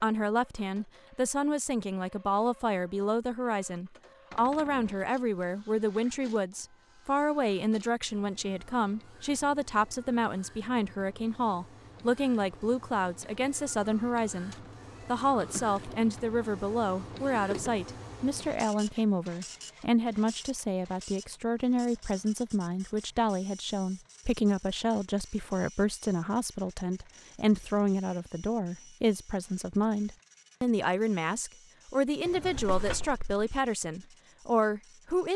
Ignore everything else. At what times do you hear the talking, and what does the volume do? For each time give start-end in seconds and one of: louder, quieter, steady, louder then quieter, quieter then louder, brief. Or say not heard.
0.0-35.3 steady.